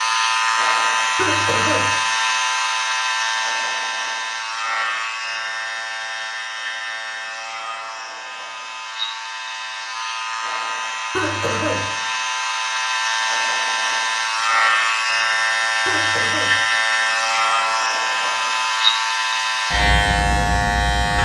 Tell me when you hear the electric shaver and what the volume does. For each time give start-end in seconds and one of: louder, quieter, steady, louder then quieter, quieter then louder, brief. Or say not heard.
0.0-21.2 quieter then louder.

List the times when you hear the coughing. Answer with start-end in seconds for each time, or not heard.
1.1-1.9, 11.2-11.8, 15.8-16.6.